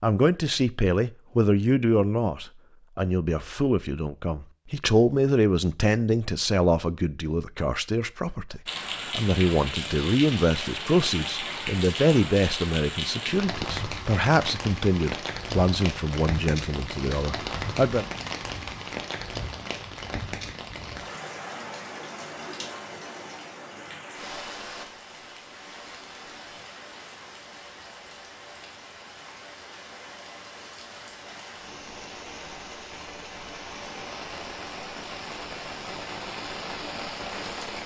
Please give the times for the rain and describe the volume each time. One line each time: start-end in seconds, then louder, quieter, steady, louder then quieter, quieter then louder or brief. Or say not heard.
8.7-37.8 quieter then louder.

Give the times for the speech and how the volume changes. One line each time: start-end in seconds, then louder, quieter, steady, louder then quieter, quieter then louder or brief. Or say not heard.
0.0-18.1 steady.